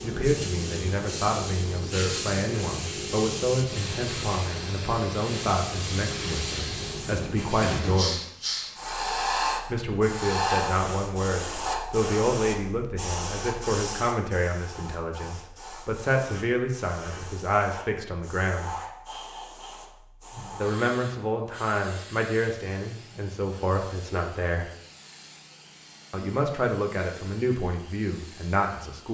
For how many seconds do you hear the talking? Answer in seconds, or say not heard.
24 s.